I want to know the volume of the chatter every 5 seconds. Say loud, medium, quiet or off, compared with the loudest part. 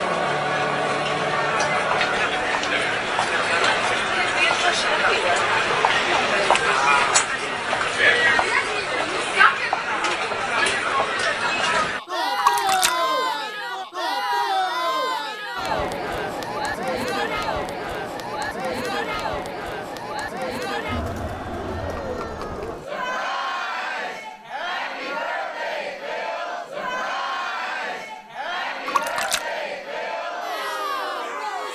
loud, loud, loud, medium, medium, medium, medium.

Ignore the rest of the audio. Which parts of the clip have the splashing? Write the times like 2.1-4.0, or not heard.
12.3-13.0, 28.9-29.5.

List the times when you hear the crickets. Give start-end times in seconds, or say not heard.
not heard.